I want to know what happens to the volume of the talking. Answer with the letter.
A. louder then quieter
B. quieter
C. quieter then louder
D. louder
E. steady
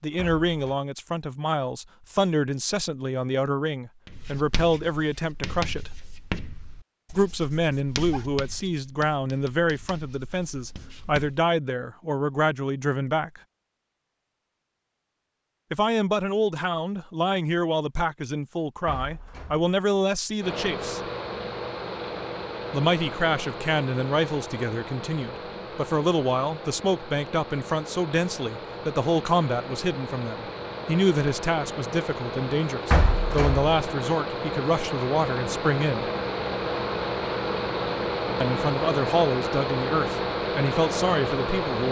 E.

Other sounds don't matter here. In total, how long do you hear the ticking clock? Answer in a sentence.
You can't hear the ticking clock here.